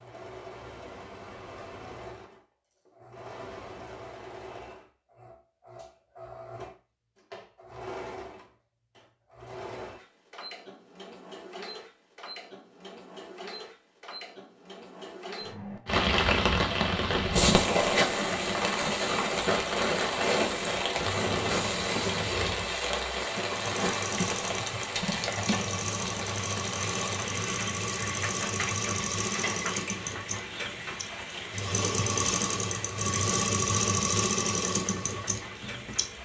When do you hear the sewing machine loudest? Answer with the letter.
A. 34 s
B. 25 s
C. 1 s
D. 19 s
A.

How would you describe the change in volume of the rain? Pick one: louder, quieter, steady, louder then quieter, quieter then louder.
quieter.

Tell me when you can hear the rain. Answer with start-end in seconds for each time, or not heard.
15.8-36.2.